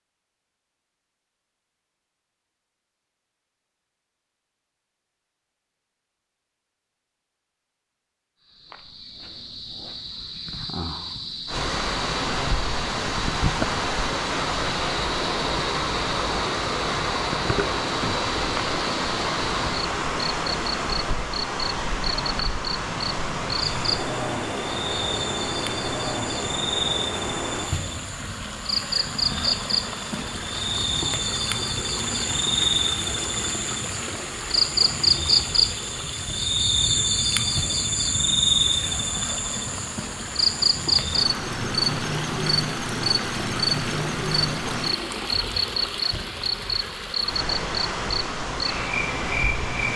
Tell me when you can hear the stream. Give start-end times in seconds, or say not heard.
11.4-49.9.